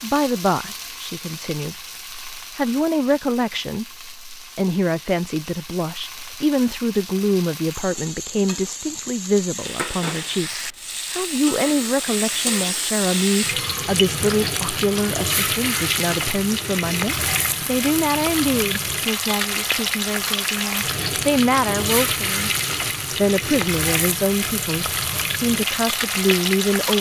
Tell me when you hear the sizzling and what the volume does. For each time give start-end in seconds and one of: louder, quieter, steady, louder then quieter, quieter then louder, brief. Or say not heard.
0.0-26.9 louder.